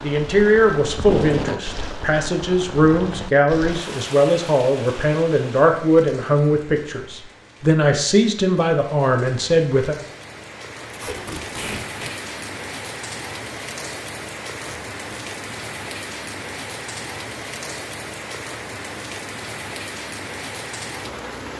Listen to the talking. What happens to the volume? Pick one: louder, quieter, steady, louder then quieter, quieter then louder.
steady.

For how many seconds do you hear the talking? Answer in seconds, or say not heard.
10 s.